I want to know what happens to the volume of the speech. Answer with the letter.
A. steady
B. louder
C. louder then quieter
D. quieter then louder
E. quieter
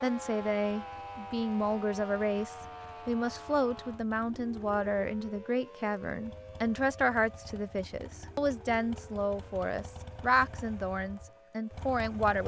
A.